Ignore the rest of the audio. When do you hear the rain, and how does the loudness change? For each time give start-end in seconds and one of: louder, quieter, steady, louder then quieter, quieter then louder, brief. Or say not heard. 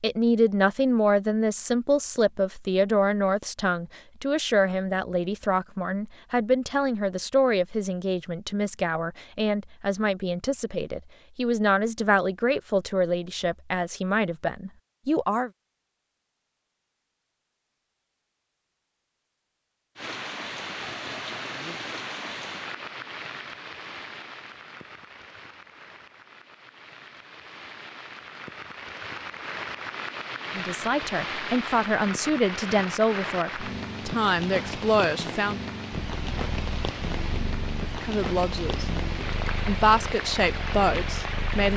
19.9-41.7 quieter then louder.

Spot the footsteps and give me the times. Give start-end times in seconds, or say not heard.
not heard.